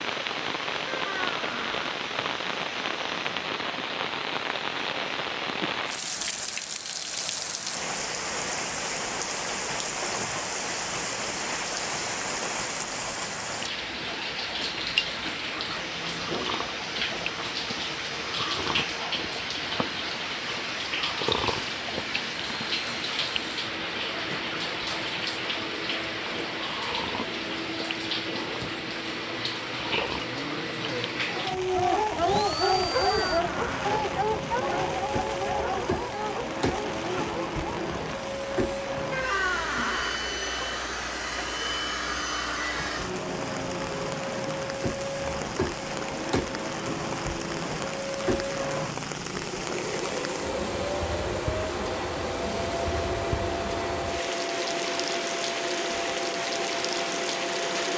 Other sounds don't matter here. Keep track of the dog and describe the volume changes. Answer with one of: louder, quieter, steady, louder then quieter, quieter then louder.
quieter.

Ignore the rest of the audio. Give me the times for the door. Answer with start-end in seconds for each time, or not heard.
0.8-1.9, 32.9-33.9, 39.1-40.2.